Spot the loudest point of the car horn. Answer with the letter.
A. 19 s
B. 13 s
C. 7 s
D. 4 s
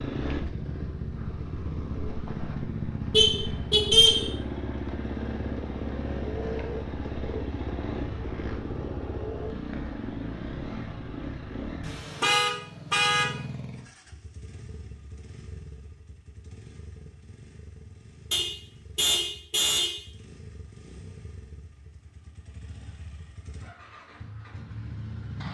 D.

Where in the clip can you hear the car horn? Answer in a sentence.
You can hear the car horn from 3.1 to 4.3 s, from 11.8 to 13.3 s and from 18.3 to 20.0 s.